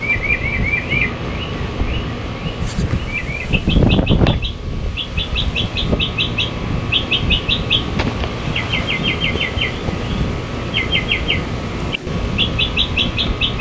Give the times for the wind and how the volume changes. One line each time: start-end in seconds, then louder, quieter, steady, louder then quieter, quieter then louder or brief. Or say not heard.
0.0-13.5 louder then quieter.